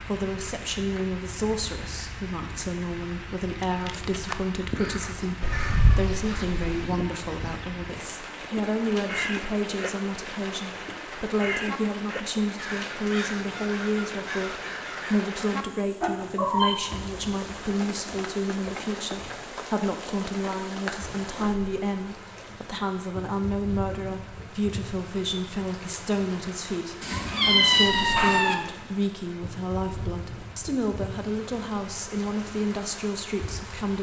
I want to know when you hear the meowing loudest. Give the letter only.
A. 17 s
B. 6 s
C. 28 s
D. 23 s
C.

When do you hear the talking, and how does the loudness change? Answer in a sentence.
You can hear the talking from 0.0 to 33.9 s, at a steady volume.